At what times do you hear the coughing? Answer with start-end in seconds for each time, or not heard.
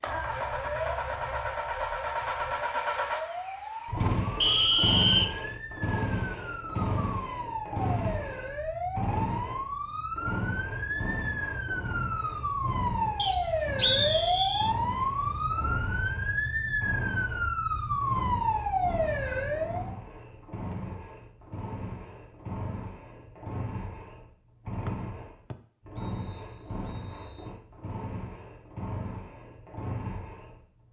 not heard.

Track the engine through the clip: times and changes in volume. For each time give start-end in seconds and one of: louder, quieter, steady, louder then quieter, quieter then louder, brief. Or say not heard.
0.0-30.8 quieter.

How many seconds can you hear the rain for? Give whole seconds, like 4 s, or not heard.
not heard.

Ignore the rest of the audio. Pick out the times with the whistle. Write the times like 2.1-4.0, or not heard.
4.4-5.5, 13.2-14.7, 25.5-27.5.